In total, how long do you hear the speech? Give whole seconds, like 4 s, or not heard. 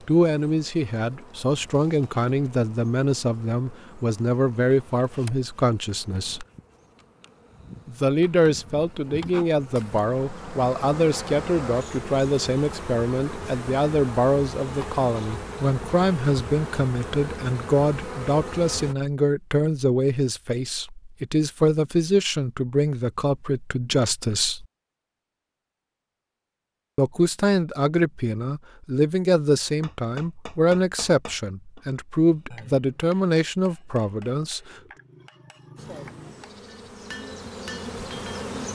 31 s.